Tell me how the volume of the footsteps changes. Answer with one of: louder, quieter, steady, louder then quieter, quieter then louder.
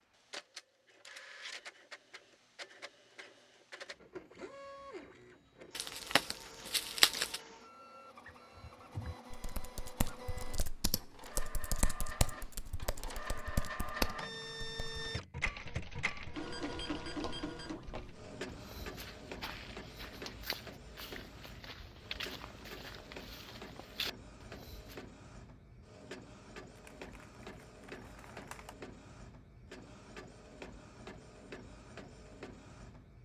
louder.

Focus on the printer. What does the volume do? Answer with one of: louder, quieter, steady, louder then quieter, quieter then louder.
louder then quieter.